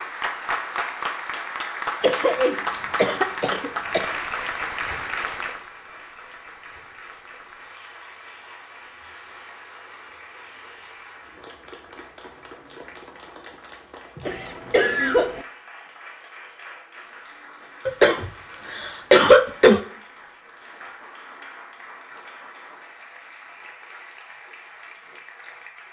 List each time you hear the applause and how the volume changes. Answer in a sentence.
You can hear the applause from 0.0 to 25.8 s, getting quieter.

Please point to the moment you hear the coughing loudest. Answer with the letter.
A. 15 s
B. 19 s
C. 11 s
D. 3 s
B.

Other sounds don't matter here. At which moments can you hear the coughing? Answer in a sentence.
The coughing can be heard from 2.0 to 4.1 s, from 14.2 to 15.4 s and from 17.9 to 19.8 s.